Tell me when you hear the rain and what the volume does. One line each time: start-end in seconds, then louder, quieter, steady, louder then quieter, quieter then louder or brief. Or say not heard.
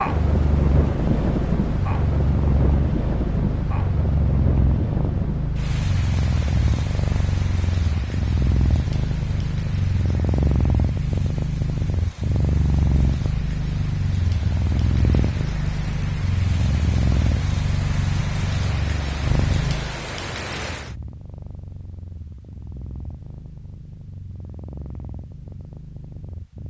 0.0-20.9 quieter then louder.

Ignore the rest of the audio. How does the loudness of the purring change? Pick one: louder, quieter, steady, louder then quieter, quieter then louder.
quieter.